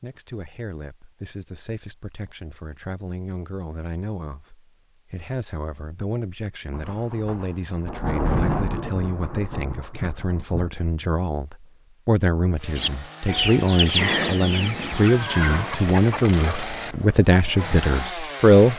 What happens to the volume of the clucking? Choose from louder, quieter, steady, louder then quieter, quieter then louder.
quieter.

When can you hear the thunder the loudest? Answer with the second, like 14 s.
8 s.